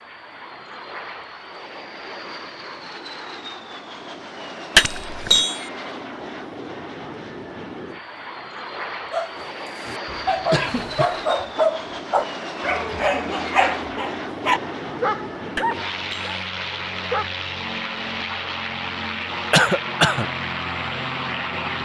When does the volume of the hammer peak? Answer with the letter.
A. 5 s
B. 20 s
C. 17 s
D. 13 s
A.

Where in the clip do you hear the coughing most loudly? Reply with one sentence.
The volume of the coughing peaks at 20 seconds.